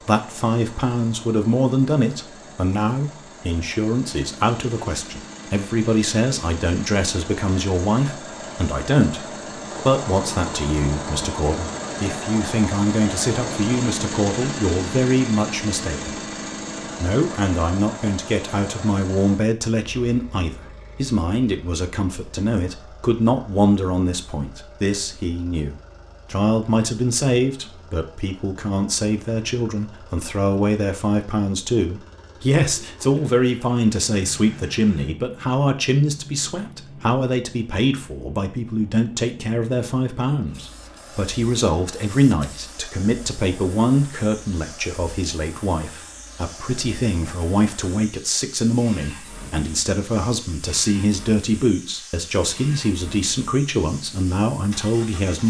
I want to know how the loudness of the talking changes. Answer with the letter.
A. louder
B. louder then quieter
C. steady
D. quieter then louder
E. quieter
C.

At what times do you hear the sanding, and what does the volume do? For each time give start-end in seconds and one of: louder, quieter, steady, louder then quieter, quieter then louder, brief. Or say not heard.
not heard.